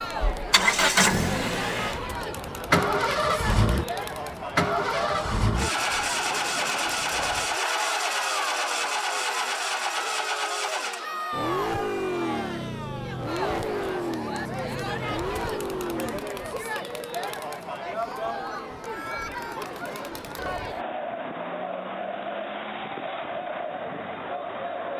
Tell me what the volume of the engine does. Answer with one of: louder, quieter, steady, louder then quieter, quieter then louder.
quieter.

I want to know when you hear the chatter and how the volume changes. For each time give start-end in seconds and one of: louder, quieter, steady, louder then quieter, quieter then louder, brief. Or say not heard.
0.0-24.9 steady.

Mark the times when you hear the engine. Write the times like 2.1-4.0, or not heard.
0.3-16.2.